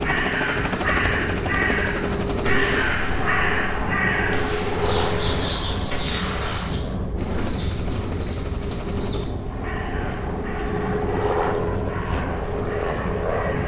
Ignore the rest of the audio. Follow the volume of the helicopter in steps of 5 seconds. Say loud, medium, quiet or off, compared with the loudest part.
loud, medium, loud.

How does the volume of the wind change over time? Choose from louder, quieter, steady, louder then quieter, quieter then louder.
steady.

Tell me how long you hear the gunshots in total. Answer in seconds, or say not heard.
4 s.